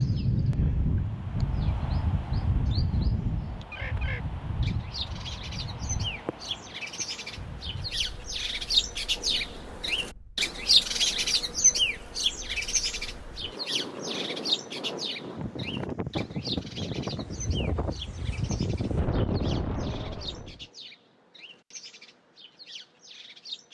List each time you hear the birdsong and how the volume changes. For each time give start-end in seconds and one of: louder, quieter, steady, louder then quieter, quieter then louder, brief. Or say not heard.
0.0-23.6 louder then quieter.